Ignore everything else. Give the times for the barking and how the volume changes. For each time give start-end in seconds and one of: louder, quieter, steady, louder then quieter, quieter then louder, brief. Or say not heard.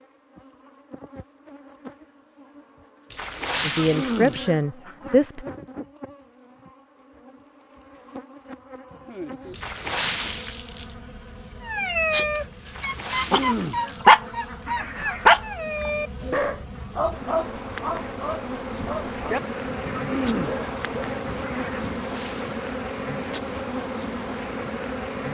11.7-22.1 louder then quieter.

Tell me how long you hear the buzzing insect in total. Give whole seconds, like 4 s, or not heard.
25 s.